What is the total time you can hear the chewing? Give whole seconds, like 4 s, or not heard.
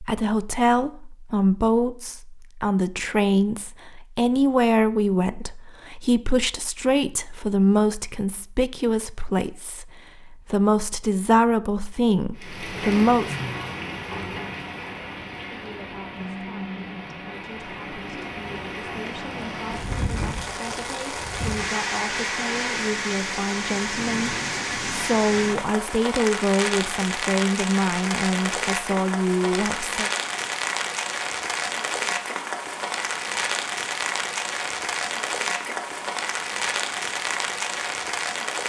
not heard.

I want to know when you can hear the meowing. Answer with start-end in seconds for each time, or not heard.
not heard.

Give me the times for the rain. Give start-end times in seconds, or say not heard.
12.3-38.6.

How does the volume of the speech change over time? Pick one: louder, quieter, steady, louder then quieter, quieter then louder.
quieter then louder.